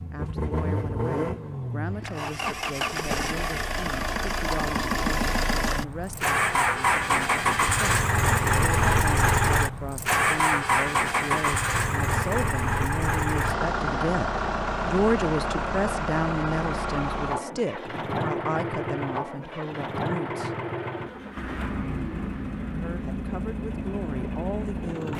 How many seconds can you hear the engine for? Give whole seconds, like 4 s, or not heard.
25 s.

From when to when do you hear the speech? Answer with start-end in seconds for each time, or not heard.
0.1-20.6, 22.7-25.1.